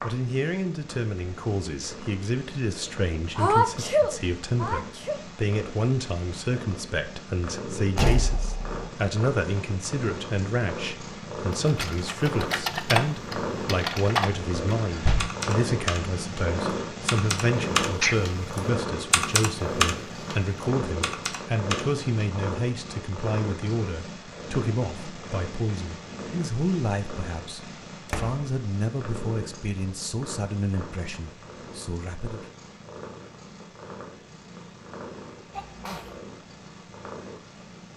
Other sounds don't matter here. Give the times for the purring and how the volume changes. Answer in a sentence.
You can hear the purring from 0.0 to 37.9 s, getting louder then quieter.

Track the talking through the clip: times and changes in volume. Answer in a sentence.
The talking can be heard from 0.0 to 32.4 s, at a steady volume.